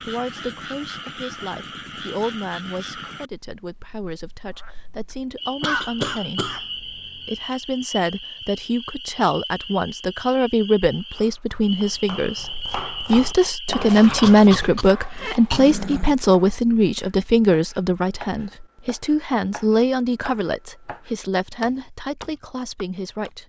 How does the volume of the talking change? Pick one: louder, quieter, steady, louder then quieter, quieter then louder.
louder then quieter.